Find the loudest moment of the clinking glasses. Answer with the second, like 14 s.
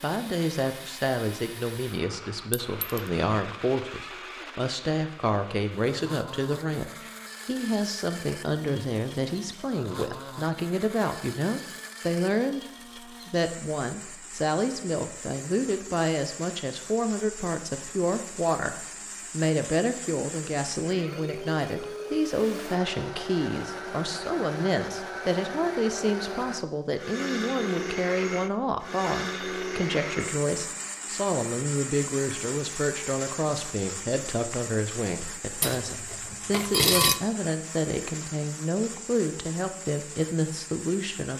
37 s.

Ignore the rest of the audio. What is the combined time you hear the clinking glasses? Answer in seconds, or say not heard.
2 s.